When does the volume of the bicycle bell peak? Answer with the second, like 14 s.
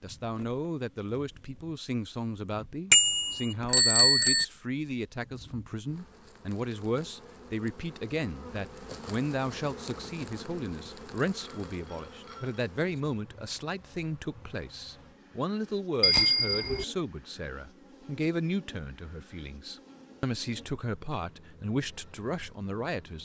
4 s.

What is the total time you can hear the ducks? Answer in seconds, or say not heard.
not heard.